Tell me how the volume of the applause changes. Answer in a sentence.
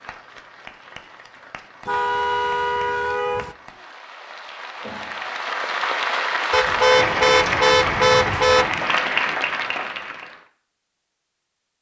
The volume of the applause goes up.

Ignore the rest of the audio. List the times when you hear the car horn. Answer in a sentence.
You can hear the car horn from 1.9 to 3.5 s and from 6.5 to 8.7 s.